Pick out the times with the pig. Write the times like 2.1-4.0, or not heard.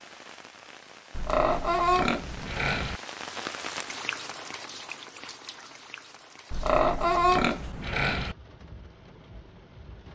1.1-3.0, 6.5-8.3.